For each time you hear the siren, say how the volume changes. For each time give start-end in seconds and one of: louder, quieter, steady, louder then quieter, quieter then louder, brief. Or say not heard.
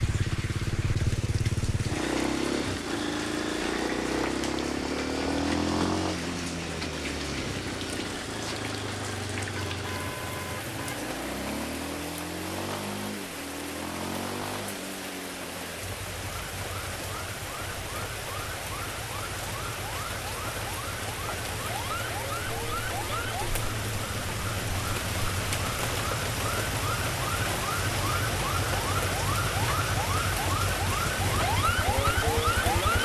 16.0-33.0 louder.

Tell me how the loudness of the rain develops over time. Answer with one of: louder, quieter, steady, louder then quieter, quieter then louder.
louder.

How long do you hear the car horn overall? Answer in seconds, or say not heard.
2 s.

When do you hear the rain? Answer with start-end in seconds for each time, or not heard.
0.0-33.0.